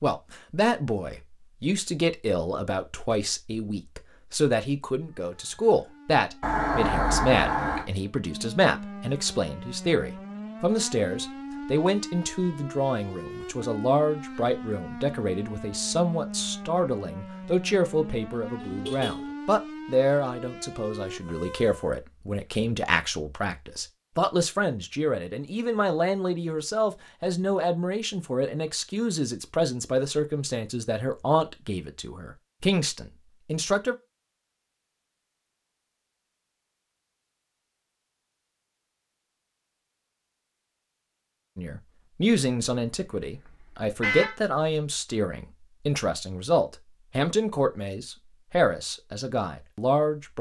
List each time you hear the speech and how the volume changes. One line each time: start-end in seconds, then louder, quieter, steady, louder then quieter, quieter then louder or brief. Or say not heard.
0.0-34.0 steady
41.5-50.3 steady.